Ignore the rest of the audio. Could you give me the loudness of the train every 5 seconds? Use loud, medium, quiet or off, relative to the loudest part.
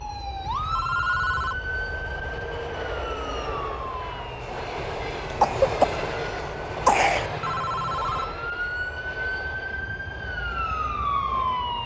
loud, loud, medium.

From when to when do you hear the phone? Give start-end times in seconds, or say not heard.
0.4-1.6, 7.2-8.2.